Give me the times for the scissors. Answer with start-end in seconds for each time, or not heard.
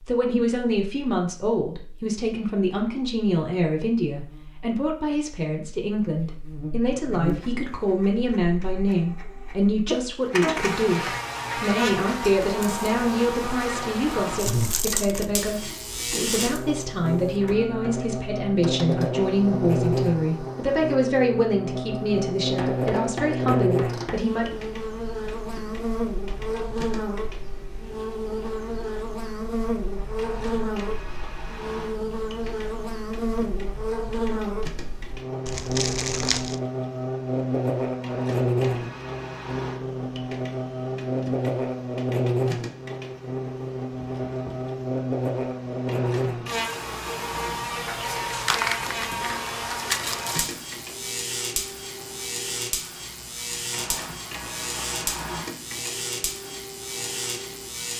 not heard.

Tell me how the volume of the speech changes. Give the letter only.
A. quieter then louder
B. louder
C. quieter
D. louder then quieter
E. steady
E.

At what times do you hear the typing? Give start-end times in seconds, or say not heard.
not heard.